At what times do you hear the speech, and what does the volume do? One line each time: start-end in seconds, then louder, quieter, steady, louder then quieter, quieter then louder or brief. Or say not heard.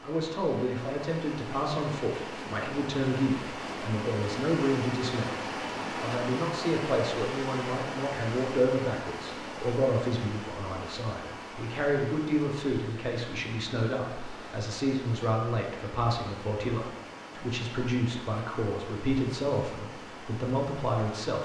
0.0-21.4 steady.